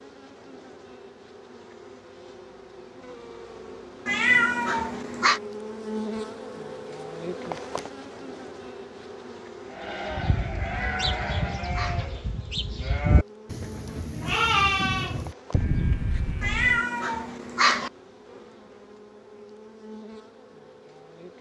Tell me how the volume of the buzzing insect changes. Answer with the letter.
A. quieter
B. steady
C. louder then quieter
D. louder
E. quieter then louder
C.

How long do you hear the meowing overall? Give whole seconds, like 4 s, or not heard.
4 s.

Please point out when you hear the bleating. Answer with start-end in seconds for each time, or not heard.
9.7-16.8.